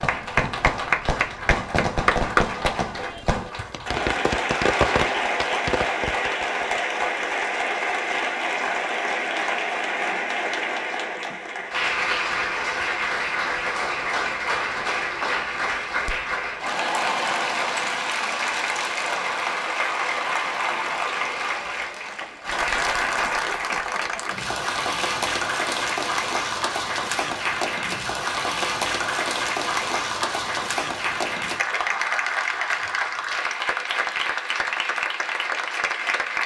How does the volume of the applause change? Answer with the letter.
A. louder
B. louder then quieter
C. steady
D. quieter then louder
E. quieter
C.